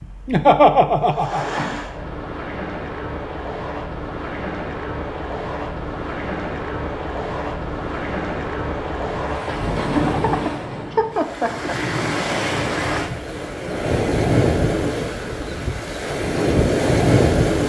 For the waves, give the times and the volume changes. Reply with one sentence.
You can hear the waves from 0.0 to 17.6 s, getting louder.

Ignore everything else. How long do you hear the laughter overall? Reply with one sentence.
You can hear the laughter for 3 seconds altogether.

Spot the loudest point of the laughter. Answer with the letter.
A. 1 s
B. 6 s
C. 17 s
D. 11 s
A.